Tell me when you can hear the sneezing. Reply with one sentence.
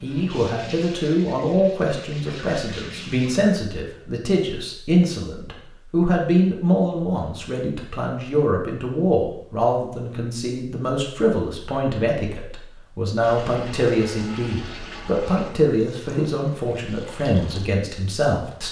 The sneezing can't be heard in this clip.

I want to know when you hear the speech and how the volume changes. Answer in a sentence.
You can hear the speech from 0.0 to 18.6 s, at a steady volume.